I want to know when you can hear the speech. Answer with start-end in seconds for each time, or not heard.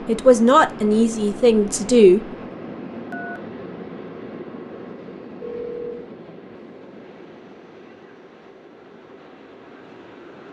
0.1-2.2.